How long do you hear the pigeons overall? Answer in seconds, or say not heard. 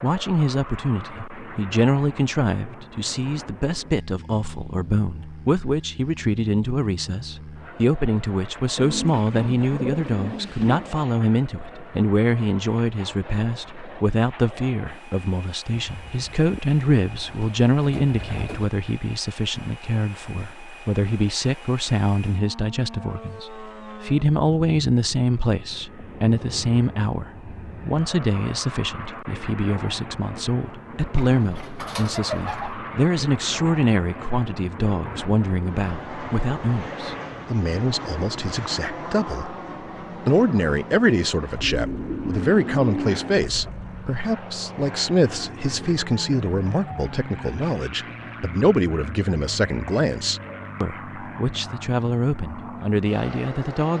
9 s.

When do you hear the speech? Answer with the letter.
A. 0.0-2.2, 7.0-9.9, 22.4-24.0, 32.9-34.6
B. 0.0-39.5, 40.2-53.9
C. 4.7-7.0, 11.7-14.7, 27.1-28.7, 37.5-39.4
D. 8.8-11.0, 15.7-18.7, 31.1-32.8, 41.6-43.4
B.